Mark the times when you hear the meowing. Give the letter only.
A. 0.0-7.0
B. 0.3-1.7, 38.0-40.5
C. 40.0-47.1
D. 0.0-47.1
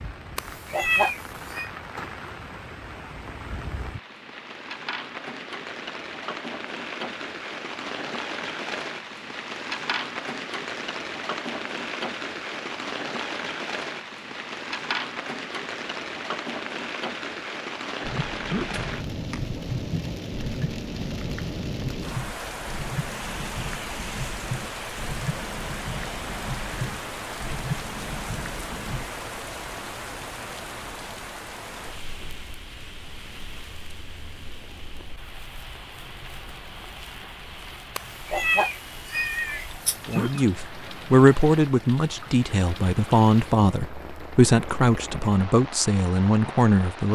B.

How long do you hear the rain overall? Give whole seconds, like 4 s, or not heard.
47 s.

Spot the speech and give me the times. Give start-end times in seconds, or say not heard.
40.0-47.1.